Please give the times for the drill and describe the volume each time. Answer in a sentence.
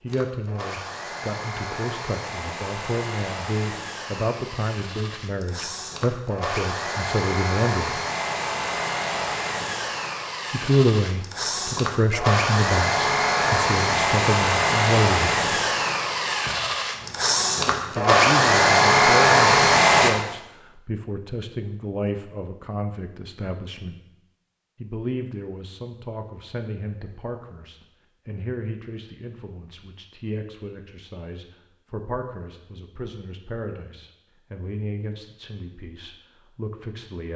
You can hear the drill from 0.0 to 20.1 s, getting louder.